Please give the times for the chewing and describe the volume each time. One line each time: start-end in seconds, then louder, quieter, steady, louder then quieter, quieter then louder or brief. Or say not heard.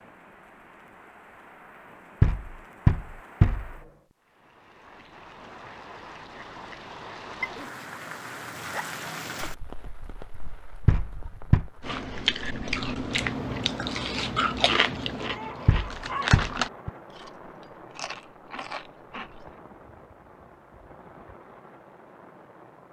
11.8-19.5 quieter.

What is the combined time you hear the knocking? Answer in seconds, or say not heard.
4 s.